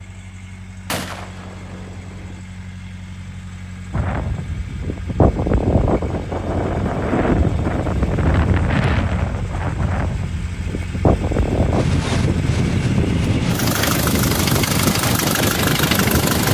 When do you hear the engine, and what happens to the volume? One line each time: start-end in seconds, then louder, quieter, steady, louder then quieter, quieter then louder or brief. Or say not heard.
0.0-16.4 louder.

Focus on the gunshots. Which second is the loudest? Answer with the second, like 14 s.
1 s.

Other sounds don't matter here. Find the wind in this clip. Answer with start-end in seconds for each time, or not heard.
3.9-16.4.